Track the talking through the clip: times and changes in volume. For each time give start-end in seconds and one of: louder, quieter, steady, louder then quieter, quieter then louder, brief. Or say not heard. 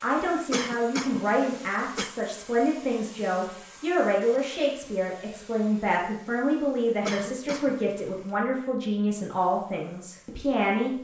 0.0-10.9 steady.